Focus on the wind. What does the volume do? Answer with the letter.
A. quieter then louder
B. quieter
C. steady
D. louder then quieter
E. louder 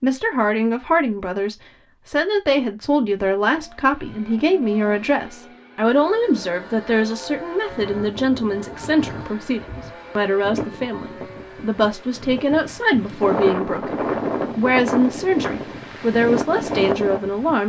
E.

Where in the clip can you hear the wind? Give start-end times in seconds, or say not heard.
7.7-17.6.